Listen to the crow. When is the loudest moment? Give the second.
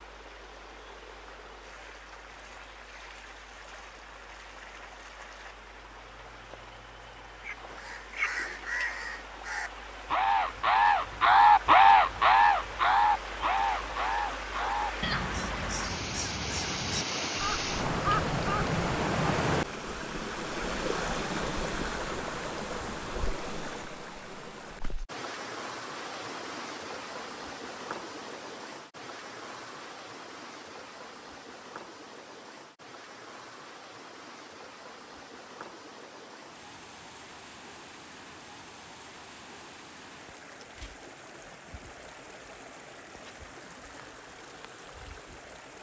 12 s.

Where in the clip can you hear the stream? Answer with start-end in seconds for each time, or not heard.
0.0-45.7.